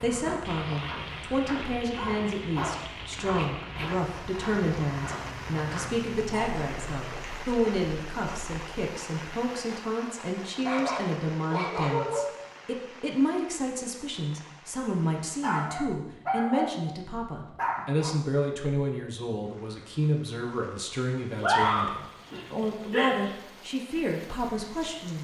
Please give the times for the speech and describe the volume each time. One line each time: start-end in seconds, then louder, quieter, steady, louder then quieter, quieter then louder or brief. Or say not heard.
0.0-25.1 steady.